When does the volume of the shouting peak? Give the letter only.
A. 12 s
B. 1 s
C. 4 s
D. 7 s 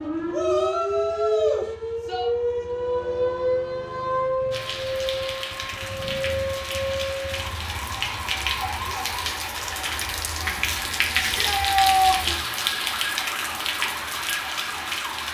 A.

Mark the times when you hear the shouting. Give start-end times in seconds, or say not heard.
0.3-2.2, 11.2-12.3.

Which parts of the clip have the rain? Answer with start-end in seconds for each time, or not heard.
4.5-15.2.